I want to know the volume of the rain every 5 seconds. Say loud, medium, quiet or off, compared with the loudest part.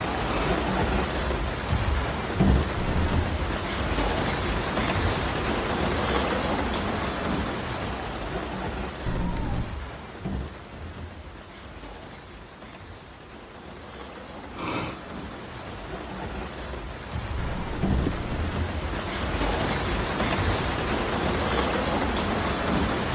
loud, loud, quiet, medium, loud.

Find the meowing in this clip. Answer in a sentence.
The meowing can be heard from 2.8 to 3.3 s, from 9.1 to 9.8 s and from 17.4 to 18.4 s.